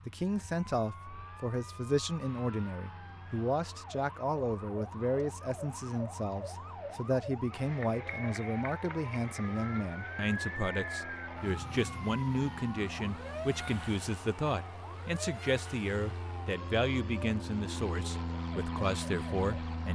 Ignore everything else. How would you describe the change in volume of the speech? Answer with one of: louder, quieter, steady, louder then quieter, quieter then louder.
steady.